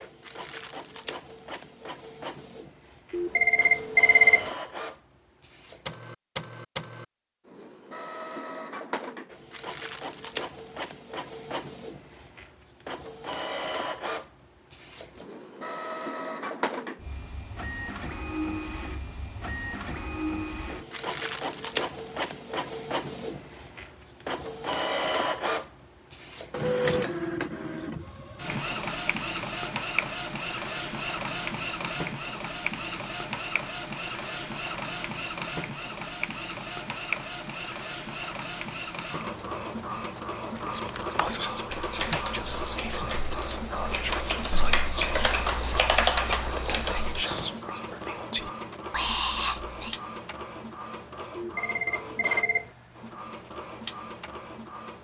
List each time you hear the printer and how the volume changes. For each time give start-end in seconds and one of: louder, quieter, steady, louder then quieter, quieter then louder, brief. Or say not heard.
0.0-54.9 louder then quieter.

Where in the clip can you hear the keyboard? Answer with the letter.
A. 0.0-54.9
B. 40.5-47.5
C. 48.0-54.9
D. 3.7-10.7
B.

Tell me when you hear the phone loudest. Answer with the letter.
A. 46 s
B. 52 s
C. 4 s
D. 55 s
C.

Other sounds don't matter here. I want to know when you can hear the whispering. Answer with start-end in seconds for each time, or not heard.
40.5-50.0.